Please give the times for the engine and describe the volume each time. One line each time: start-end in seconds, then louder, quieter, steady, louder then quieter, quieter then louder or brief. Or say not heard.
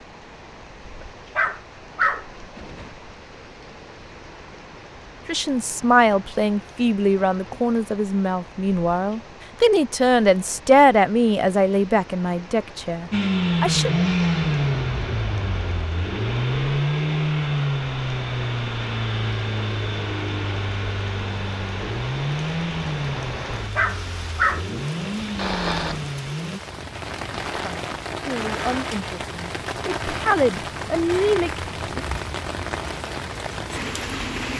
13.1-26.6 quieter.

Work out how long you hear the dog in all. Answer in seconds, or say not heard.
4 s.